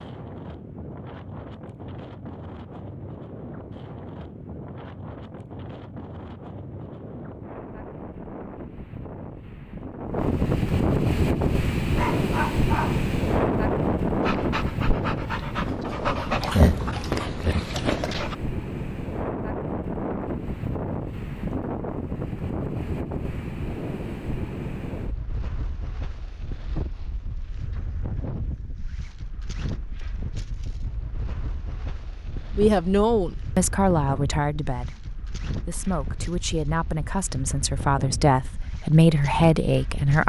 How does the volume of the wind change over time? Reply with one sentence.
The loudness of the wind goes up, then down.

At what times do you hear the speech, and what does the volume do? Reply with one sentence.
The speech can be heard from 32.5 to 40.2 s, getting quieter then louder.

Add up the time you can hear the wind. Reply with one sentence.
You can hear the wind for 40 seconds altogether.